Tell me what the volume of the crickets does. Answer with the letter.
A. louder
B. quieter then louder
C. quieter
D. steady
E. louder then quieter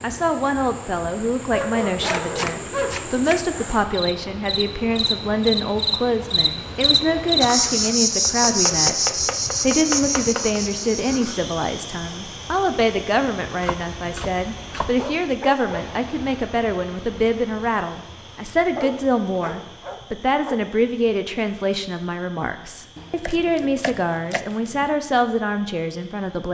E.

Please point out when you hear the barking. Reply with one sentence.
You can hear the barking from 1.5 to 3.0 s, from 14.9 to 15.8 s and from 18.8 to 20.6 s.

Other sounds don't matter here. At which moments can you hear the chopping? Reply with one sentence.
The chopping can be heard from 2.0 to 3.5 s, from 8.1 to 10.6 s, from 13.6 to 15.1 s and from 22.9 to 24.9 s.